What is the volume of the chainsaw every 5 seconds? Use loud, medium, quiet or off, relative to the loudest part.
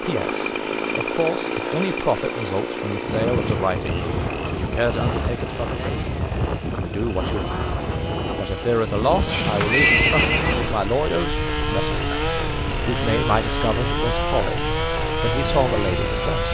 loud, medium, loud, loud.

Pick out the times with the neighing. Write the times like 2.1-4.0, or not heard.
9.2-10.7.